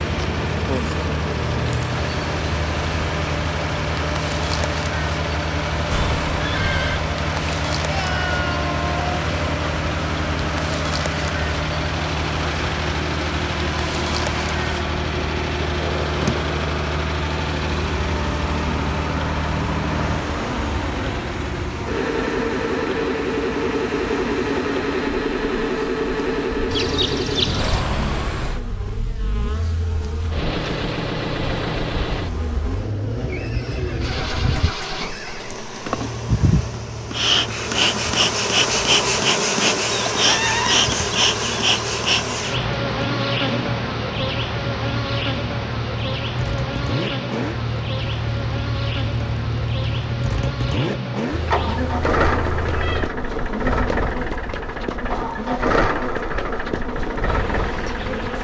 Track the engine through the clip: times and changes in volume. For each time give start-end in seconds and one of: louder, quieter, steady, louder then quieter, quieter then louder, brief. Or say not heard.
0.0-58.3 quieter then louder.